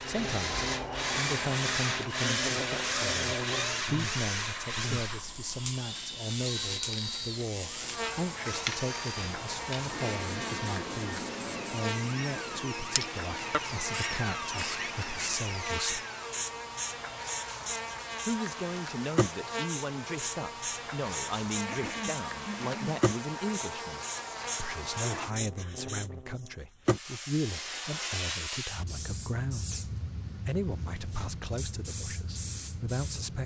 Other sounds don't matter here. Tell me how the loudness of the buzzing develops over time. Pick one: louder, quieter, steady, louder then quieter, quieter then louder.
steady.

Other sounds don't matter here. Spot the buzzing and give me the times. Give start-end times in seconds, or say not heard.
0.0-26.6.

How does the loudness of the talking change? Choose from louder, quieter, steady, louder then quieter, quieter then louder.
steady.